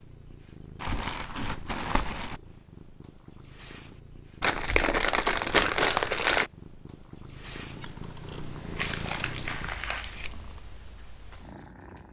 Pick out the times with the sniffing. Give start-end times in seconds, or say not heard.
not heard.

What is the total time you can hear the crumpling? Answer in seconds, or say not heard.
5 s.